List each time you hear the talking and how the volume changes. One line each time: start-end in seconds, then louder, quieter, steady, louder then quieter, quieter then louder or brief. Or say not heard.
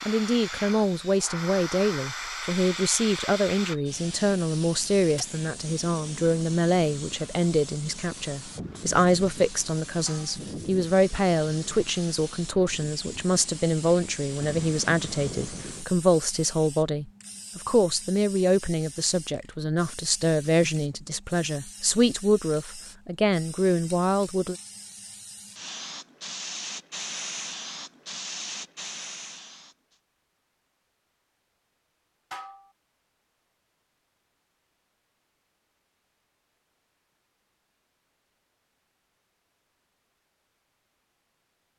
0.0-24.6 steady.